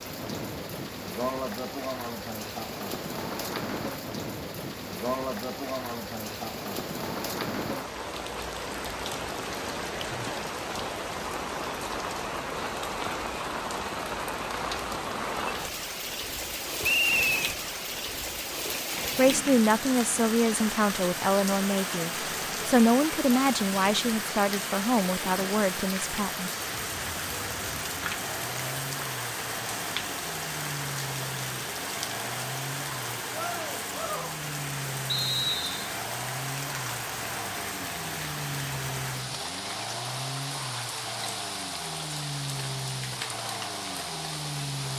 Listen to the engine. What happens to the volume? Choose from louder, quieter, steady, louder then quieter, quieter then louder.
steady.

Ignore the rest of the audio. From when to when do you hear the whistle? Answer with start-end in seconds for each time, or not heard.
16.8-17.4, 35.0-36.0.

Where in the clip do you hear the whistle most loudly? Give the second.
17 s.